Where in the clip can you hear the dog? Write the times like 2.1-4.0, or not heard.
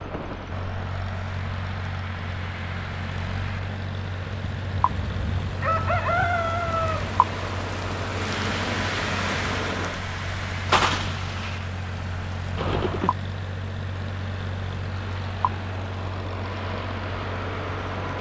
not heard.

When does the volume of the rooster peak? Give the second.
6 s.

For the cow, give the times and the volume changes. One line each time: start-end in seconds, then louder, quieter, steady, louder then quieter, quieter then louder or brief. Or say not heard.
not heard.